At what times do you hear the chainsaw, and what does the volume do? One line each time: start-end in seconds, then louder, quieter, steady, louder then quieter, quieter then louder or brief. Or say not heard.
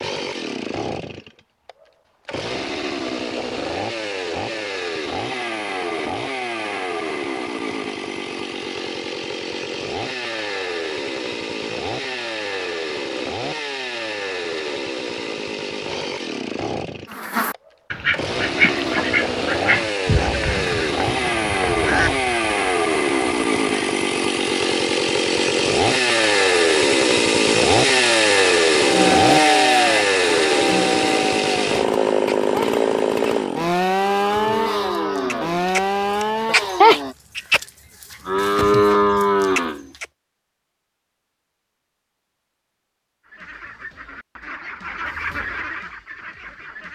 0.0-37.1 louder.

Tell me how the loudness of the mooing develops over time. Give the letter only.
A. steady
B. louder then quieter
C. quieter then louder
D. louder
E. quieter
C.